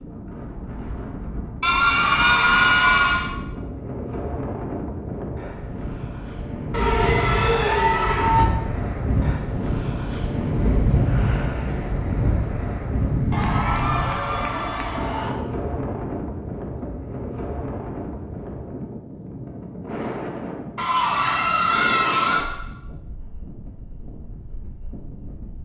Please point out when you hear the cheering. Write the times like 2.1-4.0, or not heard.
1.6-3.3, 6.7-8.4, 13.3-15.3, 20.8-22.4.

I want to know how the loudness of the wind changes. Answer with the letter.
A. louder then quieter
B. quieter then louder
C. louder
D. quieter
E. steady
A.